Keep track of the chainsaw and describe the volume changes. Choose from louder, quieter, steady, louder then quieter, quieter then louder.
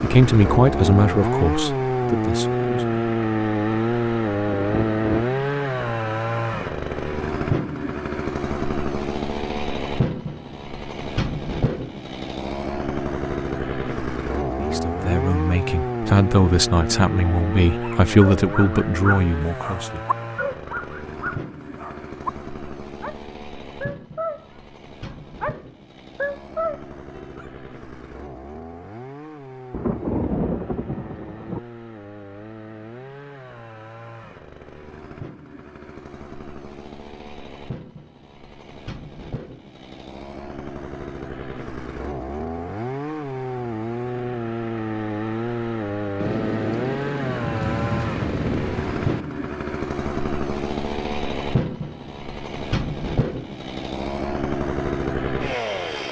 quieter then louder.